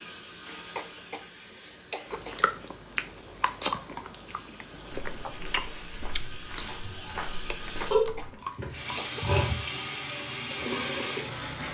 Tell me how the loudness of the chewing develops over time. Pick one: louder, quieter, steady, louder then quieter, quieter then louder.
quieter.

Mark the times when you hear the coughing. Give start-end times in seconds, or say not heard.
0.8-2.4, 7.8-9.2.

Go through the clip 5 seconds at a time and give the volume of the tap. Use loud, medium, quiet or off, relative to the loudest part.
quiet, loud, loud.